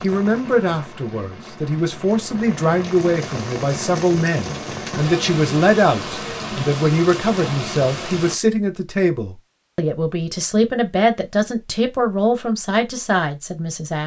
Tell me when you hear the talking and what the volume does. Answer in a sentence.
You can hear the talking from 0.0 to 14.0 s, at a steady volume.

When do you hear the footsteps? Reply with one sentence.
You can't hear the footsteps here.